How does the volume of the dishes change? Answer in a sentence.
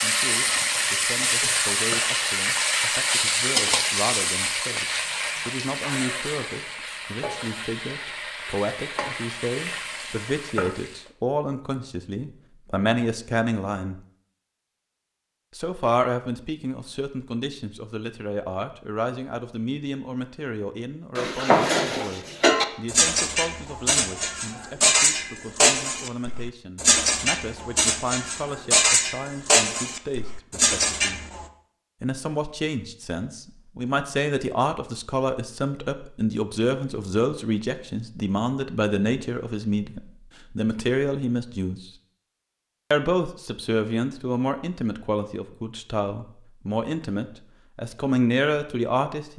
The loudness of the dishes stays about the same.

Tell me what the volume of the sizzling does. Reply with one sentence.
The volume of the sizzling goes down.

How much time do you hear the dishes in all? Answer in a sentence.
The dishes can be heard for 10 seconds in total.